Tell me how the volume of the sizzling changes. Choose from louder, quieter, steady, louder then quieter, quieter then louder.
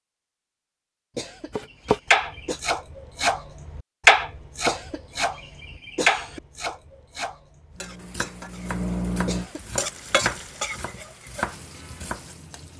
louder then quieter.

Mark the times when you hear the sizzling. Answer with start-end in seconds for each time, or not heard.
7.8-12.7.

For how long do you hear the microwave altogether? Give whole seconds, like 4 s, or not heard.
2 s.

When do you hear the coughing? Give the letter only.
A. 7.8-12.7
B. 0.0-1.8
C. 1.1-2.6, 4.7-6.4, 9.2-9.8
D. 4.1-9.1
C.